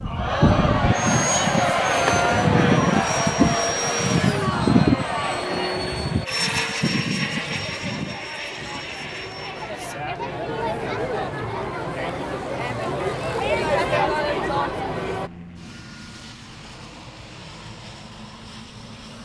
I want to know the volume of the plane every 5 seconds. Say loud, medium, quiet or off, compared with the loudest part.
loud, medium, quiet, quiet.